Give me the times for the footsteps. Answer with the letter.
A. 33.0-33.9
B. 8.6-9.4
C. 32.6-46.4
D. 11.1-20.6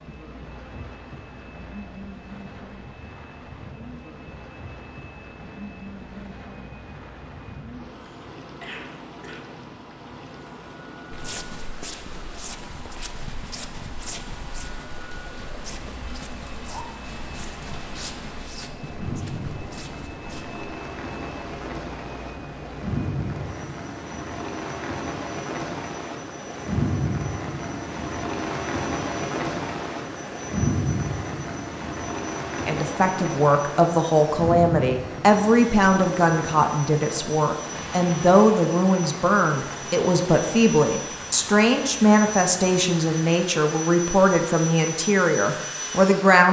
D.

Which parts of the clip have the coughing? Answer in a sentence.
You can hear the coughing from 8.6 to 9.4 s.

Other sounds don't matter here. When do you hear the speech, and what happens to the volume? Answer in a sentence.
You can hear the speech from 32.6 to 46.4 s, at a steady volume.